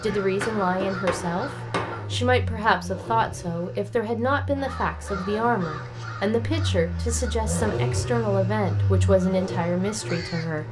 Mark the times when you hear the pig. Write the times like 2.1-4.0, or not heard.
not heard.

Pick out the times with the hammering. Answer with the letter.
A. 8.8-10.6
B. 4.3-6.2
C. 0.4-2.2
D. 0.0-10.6
C.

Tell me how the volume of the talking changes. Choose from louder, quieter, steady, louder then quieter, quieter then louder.
steady.